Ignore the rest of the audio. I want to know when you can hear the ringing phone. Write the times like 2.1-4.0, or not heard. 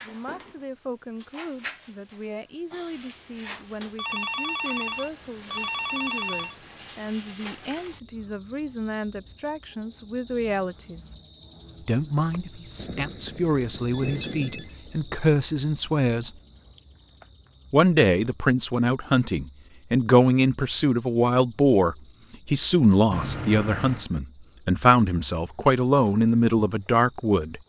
4.0-6.5, 12.8-14.8, 23.1-24.1.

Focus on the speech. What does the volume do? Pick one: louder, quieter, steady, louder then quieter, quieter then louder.
louder.